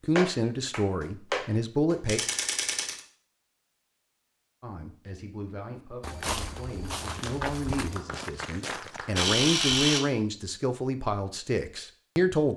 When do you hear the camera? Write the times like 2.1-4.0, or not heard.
2.0-3.0, 9.2-10.0.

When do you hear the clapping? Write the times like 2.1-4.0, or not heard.
0.1-2.0, 7.2-9.2.